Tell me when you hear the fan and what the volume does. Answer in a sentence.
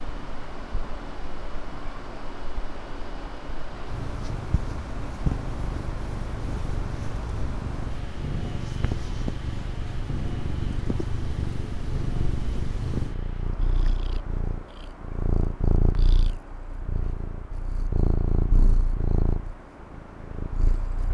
The fan can be heard from 0.0 to 21.1 s, getting quieter.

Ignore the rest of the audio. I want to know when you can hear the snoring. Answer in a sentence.
You can't hear the snoring here.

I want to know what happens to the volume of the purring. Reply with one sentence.
The volume of the purring goes up.